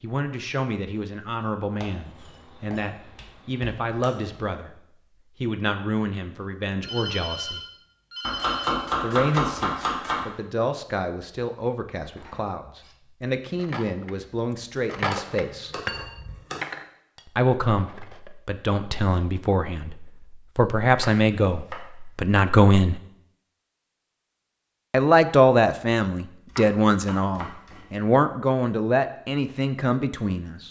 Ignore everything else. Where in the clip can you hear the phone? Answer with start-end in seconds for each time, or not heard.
6.8-8.8.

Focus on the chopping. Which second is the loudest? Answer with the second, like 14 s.
9 s.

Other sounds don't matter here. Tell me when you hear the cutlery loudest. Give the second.
15 s.